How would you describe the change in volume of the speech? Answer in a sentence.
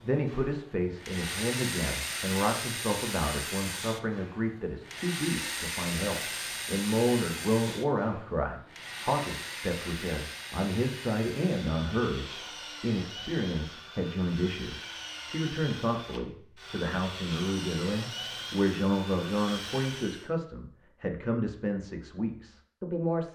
The volume of the speech stays about the same.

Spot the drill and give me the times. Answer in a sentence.
You can hear the drill from 0.0 to 20.3 s.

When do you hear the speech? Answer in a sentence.
You can hear the speech from 0.0 to 23.3 s.